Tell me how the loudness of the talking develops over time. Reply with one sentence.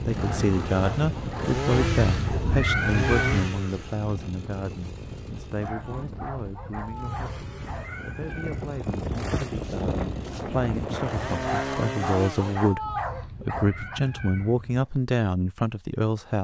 The volume of the talking goes down, then up.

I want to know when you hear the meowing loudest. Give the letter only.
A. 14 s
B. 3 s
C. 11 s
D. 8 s
B.